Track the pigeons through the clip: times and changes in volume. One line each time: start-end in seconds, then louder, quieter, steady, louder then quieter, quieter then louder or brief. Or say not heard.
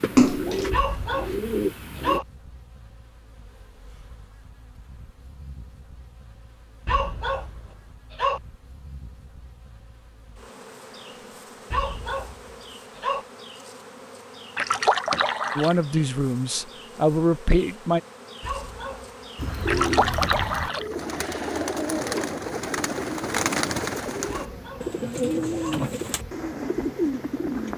0.0-2.2 brief
19.4-27.7 steady.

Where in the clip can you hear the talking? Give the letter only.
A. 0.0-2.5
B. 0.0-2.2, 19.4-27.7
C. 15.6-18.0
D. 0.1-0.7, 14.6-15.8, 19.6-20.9
C.